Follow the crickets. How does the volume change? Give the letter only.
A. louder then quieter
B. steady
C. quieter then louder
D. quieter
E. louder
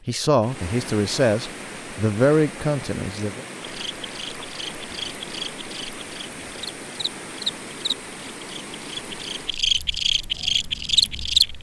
E.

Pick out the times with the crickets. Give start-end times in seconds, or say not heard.
3.6-11.5.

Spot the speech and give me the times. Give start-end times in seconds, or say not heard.
0.1-3.5.